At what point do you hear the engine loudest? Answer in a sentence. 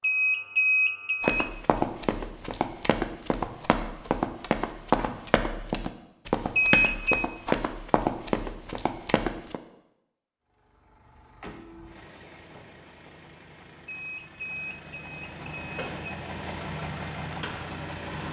The loudest moment of the engine is at 17 seconds.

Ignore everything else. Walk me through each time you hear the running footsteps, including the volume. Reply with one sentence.
You can hear the running footsteps from 1.2 to 9.6 s, at a steady volume.